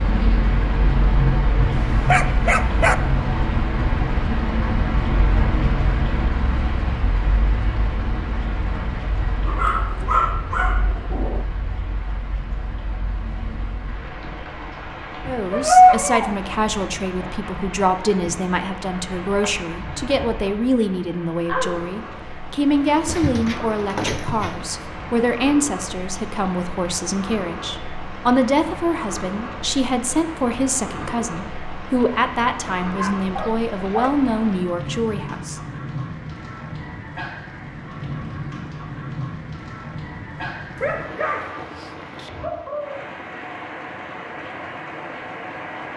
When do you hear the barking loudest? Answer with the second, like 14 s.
16 s.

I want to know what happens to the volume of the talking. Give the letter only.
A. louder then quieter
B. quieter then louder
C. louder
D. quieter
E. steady
E.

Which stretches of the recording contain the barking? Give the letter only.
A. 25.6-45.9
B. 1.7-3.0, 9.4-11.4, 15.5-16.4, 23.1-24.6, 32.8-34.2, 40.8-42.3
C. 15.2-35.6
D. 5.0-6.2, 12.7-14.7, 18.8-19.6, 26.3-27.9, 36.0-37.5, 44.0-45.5
B.